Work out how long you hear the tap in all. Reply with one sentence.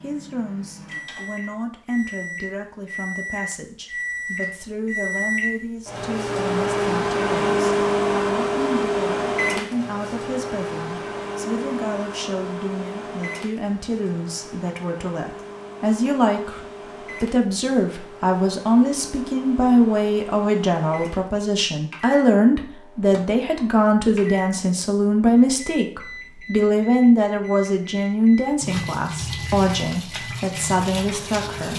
You can hear the tap for 3 seconds altogether.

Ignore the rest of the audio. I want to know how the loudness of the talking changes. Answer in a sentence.
The volume of the talking goes up.